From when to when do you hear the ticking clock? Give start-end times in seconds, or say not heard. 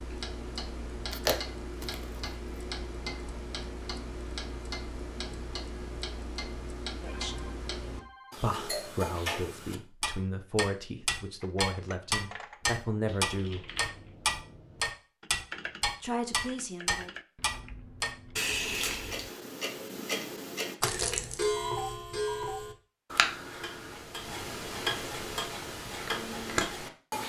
0.0-27.2.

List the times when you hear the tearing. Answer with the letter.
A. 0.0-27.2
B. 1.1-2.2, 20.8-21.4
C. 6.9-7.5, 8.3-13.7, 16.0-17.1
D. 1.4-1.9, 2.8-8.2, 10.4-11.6
B.